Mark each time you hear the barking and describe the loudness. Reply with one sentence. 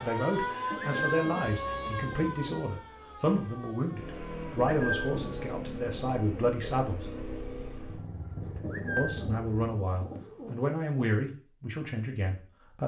You can't hear the barking here.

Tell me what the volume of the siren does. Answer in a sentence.
The volume of the siren goes down.